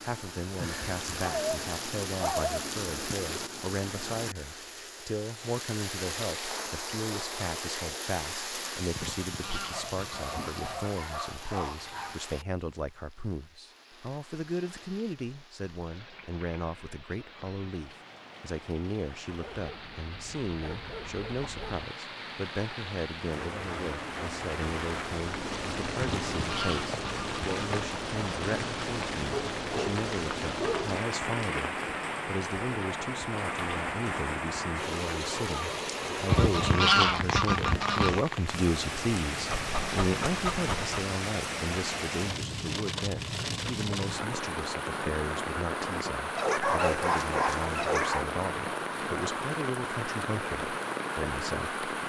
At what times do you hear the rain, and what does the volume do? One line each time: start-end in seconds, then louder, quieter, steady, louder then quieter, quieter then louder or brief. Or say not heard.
0.0-52.0 quieter then louder.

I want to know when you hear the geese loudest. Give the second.
37 s.